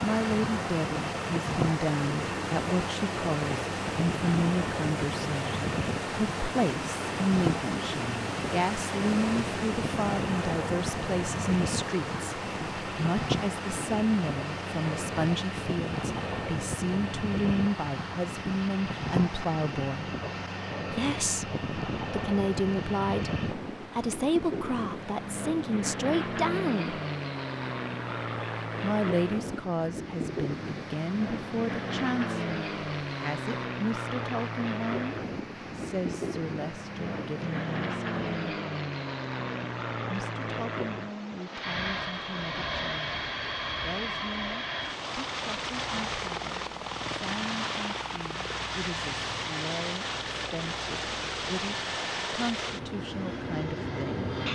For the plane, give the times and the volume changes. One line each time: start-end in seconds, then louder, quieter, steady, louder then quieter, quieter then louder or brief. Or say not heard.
0.0-54.5 steady.